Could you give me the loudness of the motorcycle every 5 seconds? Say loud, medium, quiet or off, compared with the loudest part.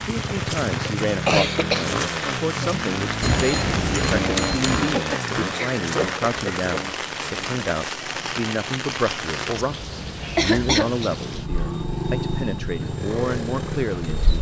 loud, medium, loud.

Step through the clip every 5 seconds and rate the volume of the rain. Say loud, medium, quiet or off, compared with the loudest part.
loud, loud, medium.